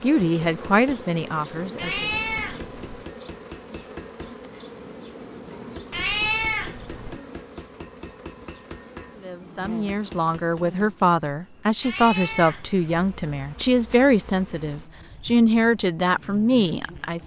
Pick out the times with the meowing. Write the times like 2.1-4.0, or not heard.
1.8-3.0, 5.9-7.2, 11.8-12.9.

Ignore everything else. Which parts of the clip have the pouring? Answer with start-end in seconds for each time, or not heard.
not heard.